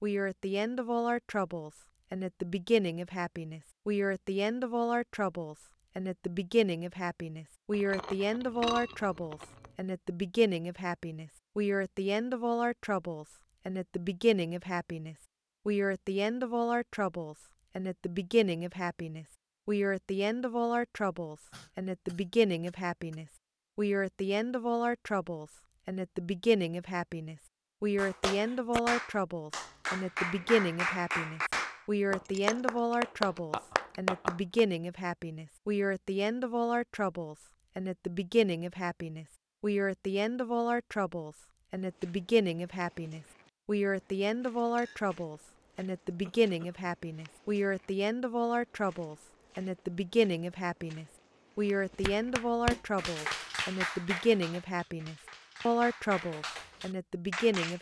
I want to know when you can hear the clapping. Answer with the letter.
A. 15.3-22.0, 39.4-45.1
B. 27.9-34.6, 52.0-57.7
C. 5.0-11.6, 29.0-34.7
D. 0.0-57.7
B.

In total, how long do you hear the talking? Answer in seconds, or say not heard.
58 s.